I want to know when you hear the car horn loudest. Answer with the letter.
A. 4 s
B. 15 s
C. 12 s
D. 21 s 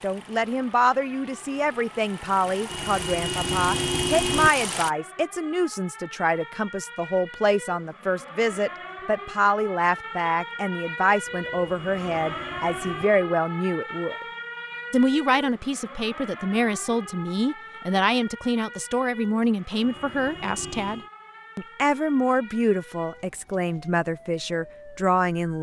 A.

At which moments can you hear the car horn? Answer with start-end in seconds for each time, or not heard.
2.6-4.5, 11.2-13.1, 19.8-21.1.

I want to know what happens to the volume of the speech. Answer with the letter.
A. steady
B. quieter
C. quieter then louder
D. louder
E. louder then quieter
A.